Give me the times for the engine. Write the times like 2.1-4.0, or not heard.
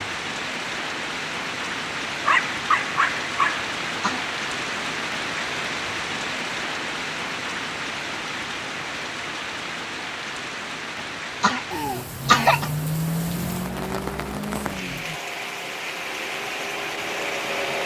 12.2-17.8.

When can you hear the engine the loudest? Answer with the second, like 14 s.
13 s.